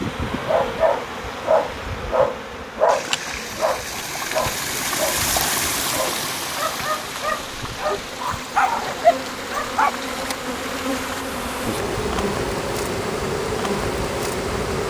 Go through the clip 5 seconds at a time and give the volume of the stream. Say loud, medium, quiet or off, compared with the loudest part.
loud, loud, medium.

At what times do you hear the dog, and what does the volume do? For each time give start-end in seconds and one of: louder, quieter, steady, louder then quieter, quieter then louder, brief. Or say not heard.
0.5-9.9 quieter then louder.